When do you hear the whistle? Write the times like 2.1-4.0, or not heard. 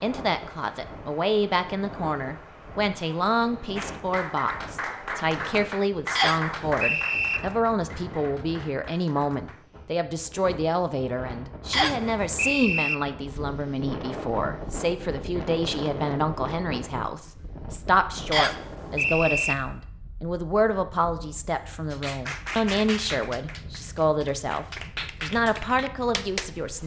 6.2-7.4, 11.7-12.9, 18.3-19.6.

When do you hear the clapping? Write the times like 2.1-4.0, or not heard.
3.8-9.7, 21.9-26.8.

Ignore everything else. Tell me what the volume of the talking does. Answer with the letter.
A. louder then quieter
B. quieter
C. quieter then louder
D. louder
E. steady
E.